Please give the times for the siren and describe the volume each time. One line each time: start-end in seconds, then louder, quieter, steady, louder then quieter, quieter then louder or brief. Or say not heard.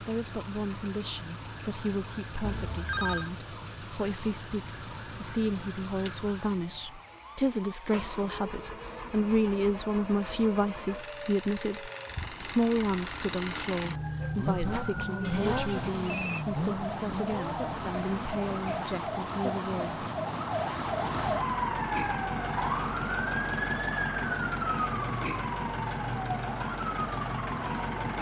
0.0-28.1 louder.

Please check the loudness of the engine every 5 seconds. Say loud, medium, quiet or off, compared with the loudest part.
medium, medium, loud, loud, loud, loud.